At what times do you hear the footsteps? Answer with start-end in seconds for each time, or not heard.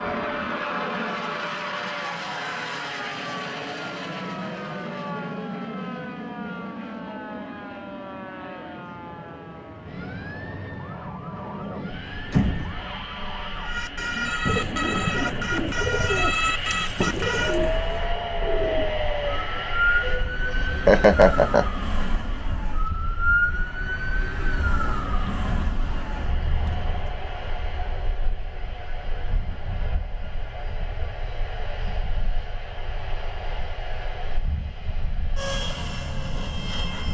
not heard.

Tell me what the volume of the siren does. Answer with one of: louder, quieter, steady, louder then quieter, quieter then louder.
louder.